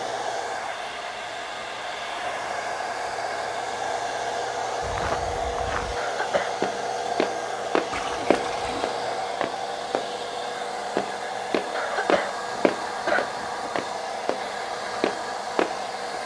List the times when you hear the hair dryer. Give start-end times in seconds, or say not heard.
0.0-16.2.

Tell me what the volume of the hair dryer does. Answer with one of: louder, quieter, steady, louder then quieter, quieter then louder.
steady.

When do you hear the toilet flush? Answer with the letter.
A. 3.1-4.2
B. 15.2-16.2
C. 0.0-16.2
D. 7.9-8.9
D.